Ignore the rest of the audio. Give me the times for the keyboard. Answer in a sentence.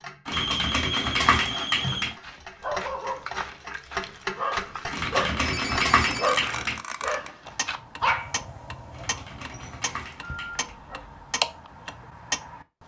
The keyboard can be heard from 0.2 to 2.1 s, from 4.9 to 6.8 s and from 8.9 to 10.8 s.